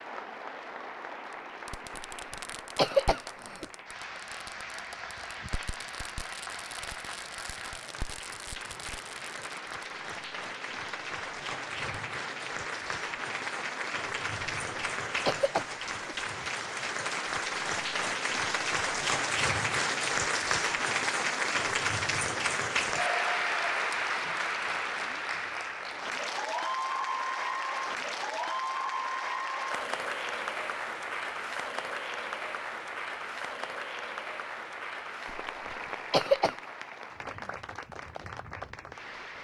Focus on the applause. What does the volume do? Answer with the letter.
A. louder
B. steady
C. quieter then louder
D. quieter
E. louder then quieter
E.